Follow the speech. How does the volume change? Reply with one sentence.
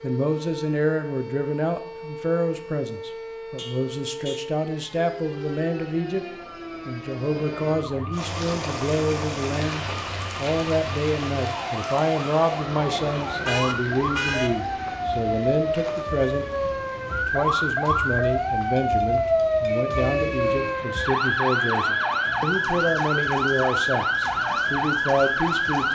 The volume of the speech stays about the same.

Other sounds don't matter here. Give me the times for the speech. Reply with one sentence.
You can hear the speech from 0.0 to 6.2 s, from 6.8 to 16.4 s and from 17.1 to 25.9 s.